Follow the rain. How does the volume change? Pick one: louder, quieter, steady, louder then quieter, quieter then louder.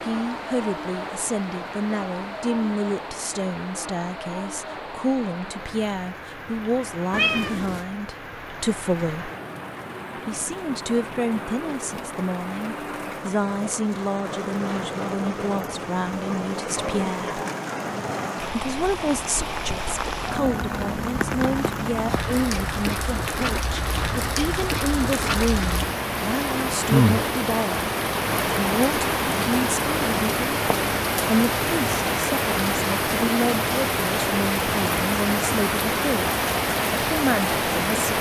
louder.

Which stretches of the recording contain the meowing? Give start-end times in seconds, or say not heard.
7.1-7.8.